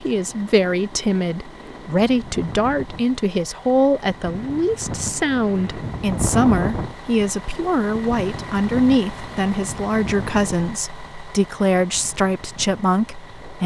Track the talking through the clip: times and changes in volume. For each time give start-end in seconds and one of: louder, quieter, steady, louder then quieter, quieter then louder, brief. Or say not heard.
0.0-13.6 steady.